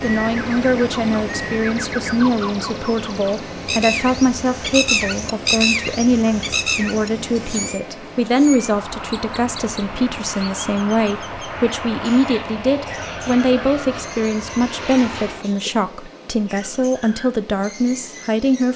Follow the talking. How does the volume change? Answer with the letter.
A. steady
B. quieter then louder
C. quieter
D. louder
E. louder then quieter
A.